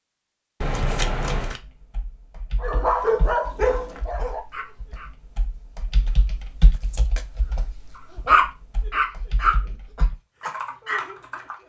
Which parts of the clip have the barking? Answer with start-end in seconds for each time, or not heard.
2.6-5.1, 8.2-11.4.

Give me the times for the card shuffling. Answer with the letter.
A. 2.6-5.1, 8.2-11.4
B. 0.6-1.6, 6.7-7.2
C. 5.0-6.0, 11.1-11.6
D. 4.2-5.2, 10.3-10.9
B.